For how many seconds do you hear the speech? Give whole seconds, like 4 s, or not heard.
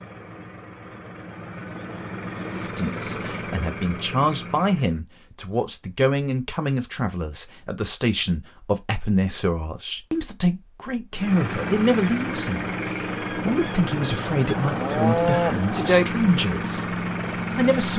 15 s.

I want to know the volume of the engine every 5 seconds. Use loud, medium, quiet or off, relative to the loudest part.
medium, off, loud, loud.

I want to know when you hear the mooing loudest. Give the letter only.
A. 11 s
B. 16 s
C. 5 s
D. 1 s
B.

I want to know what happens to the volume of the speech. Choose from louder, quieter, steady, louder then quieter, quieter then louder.
steady.